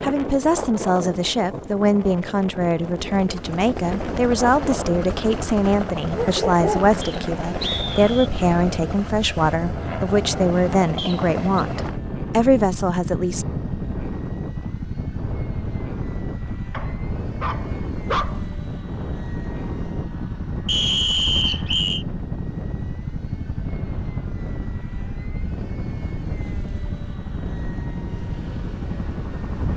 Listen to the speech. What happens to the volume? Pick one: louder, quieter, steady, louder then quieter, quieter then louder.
steady.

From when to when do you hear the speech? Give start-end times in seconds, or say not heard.
0.0-13.4.